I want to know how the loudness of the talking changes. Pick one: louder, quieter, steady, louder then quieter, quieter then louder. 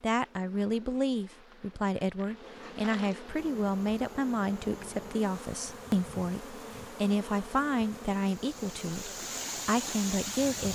steady.